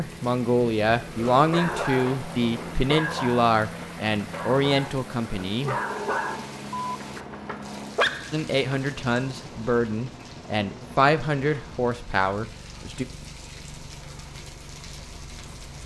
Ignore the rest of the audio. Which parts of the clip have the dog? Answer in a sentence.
You can hear the dog from 1.1 to 8.8 s.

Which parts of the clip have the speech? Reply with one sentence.
The speech can be heard from 0.0 to 5.8 s and from 8.3 to 13.1 s.